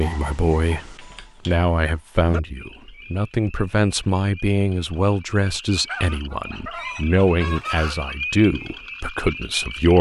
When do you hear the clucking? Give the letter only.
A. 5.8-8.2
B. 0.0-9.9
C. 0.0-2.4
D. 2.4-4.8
A.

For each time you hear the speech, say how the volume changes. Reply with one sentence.
You can hear the speech from 0.0 to 9.9 s, at a steady volume.